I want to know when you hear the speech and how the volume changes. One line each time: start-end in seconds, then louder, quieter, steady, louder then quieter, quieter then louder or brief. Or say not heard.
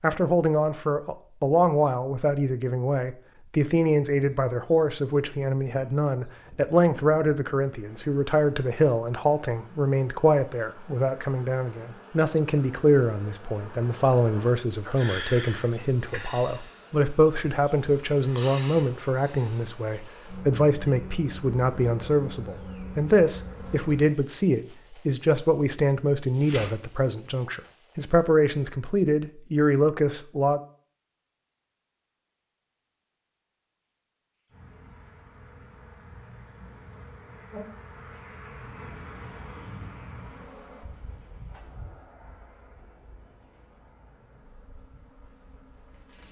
0.0-30.6 steady.